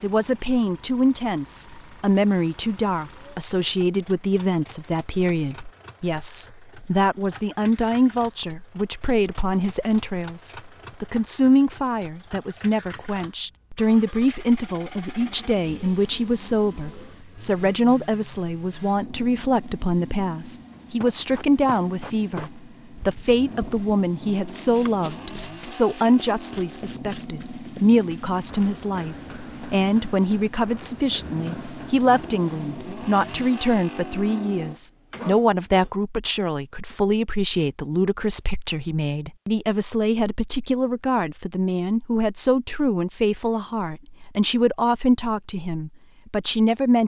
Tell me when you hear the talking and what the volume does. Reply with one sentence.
The talking can be heard from 0.0 to 47.0 s, at a steady volume.